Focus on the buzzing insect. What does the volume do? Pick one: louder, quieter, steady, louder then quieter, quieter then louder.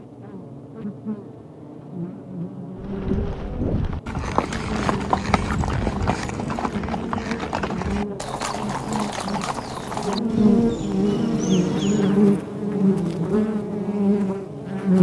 louder.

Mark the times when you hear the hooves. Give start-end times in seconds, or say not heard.
2.8-12.2.